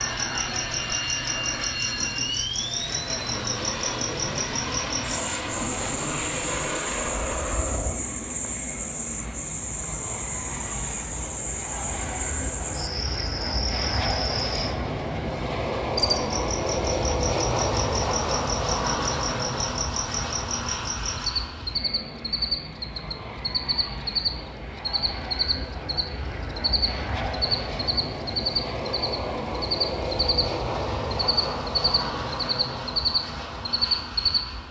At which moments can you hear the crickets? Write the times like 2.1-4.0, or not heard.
0.0-34.4.